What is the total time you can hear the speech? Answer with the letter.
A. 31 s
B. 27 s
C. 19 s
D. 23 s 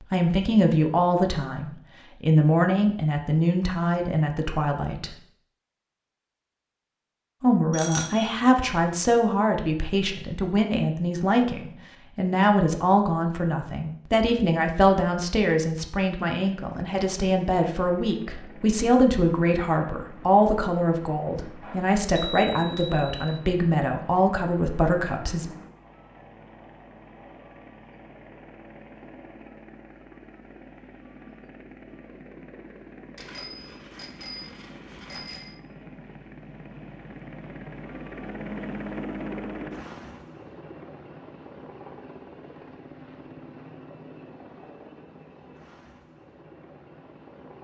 D.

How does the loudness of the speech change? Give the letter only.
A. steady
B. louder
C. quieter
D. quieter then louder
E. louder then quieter
A.